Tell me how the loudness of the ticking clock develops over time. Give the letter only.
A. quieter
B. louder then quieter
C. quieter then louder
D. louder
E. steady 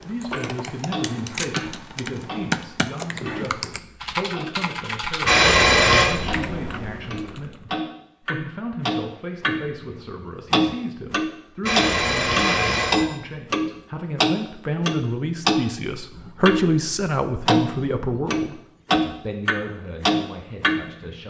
D.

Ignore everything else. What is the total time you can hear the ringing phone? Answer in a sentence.
The ringing phone can be heard for 2 seconds in total.